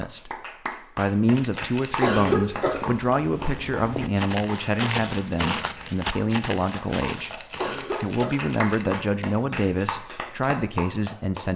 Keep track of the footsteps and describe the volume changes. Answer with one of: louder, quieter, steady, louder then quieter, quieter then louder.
louder then quieter.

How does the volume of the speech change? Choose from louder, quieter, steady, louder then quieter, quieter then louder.
steady.